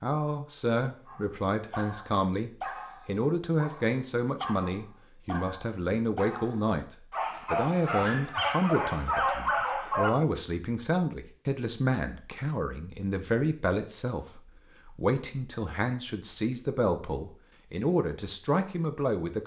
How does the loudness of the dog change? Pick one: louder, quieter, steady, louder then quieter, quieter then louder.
louder.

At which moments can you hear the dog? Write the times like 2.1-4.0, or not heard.
1.1-10.1.